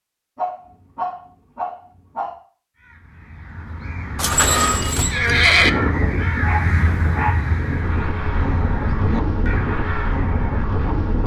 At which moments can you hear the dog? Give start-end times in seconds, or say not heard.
0.3-2.4, 6.4-7.4.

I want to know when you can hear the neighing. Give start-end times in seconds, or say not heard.
4.2-5.7.